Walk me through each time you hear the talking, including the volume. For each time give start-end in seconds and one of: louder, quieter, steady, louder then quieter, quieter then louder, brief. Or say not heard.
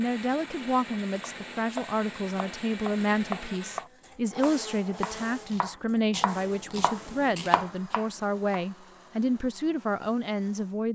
0.0-10.9 steady.